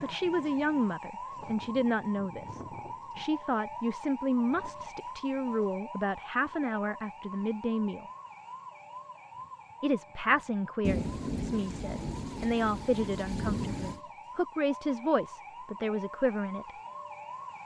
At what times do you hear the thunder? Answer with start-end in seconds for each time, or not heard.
10.8-14.0.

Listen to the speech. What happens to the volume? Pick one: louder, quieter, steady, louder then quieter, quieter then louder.
steady.